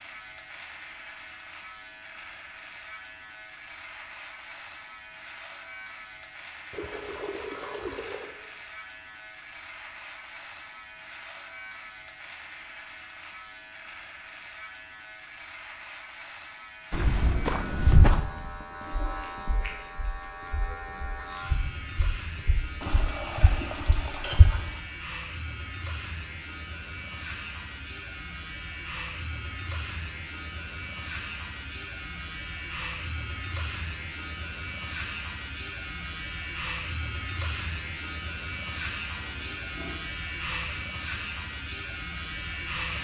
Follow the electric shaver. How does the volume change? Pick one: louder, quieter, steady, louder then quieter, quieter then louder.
louder.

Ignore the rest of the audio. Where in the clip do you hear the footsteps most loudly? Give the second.
18 s.